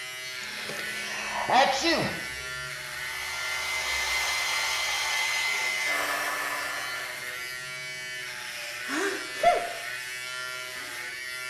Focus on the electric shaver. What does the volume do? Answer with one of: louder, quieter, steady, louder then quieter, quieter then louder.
steady.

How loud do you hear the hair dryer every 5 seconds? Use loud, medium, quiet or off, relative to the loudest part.
loud, loud, off.